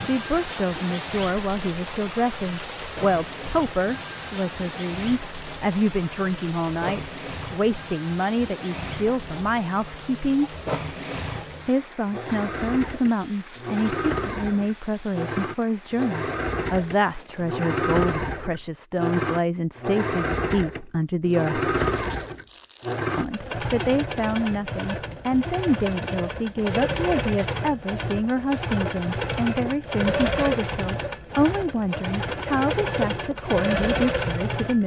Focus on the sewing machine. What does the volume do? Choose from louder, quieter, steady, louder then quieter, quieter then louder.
louder.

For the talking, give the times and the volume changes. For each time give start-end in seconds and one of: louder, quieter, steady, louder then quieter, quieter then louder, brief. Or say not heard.
0.0-10.5 steady
11.7-21.6 steady
23.1-34.8 steady.